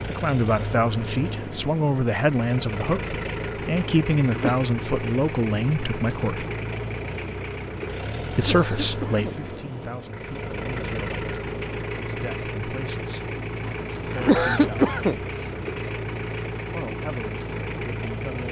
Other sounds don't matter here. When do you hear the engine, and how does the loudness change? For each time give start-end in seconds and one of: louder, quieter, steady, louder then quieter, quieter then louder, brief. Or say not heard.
0.0-18.4 steady.